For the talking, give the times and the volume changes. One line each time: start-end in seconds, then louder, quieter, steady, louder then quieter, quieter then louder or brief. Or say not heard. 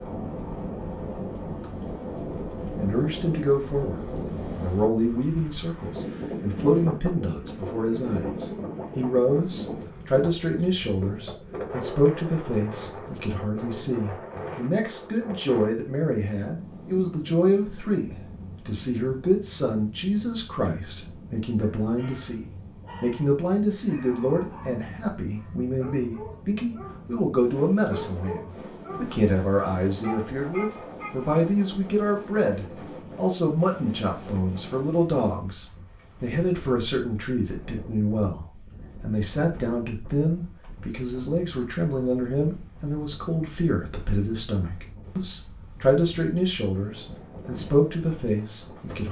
2.3-49.0 steady.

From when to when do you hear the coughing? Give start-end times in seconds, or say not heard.
not heard.